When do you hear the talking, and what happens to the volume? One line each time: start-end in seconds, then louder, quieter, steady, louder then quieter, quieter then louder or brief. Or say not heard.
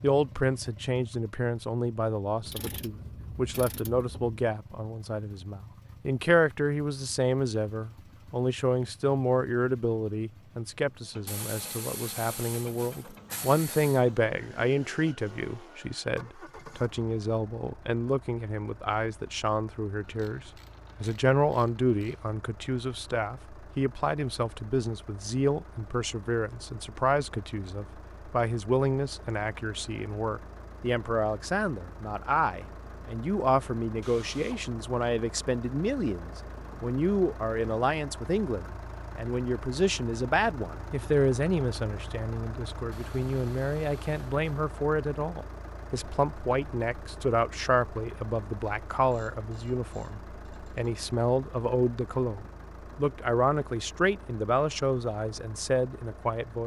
0.0-56.6 steady.